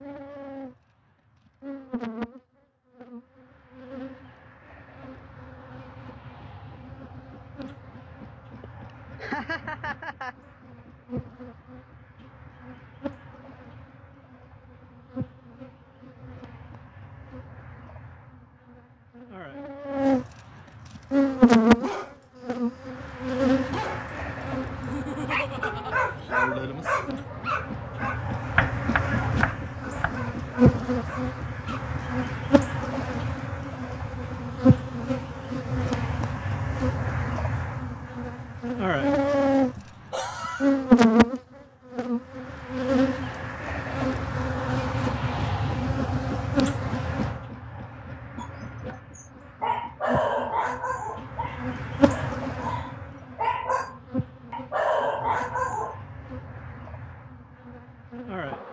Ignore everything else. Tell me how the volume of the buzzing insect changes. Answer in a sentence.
The volume of the buzzing insect goes up, then down.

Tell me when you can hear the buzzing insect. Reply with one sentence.
You can hear the buzzing insect from 0.0 to 58.6 s.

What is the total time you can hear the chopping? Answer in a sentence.
You can hear the chopping for 2 seconds altogether.